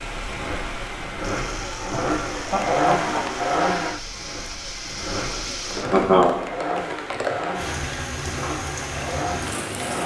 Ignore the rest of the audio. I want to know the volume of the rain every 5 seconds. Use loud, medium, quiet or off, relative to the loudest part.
medium, loud.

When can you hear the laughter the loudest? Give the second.
6 s.